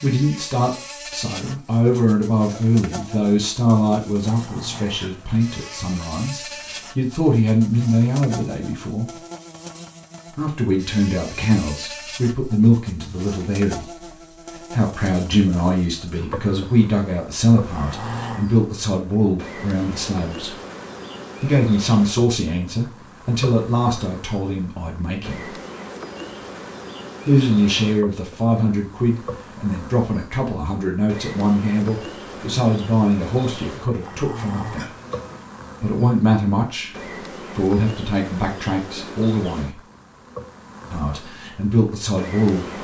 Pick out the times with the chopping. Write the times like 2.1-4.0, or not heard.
not heard.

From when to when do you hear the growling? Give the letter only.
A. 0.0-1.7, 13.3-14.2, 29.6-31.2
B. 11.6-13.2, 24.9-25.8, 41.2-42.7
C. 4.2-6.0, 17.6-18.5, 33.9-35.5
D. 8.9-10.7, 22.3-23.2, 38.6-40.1
C.